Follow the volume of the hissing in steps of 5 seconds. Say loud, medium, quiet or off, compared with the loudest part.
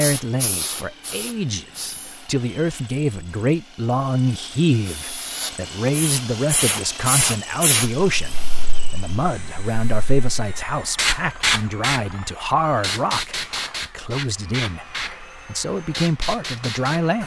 medium, loud, loud, medium.